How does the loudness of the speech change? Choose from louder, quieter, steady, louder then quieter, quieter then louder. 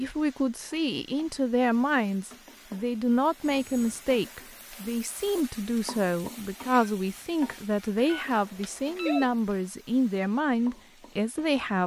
steady.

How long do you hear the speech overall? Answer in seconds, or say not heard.
12 s.